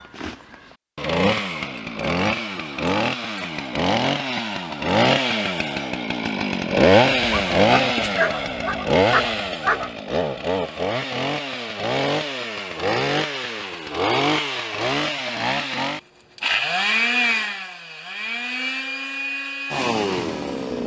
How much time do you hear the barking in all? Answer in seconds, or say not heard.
3 s.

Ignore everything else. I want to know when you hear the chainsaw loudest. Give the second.
7 s.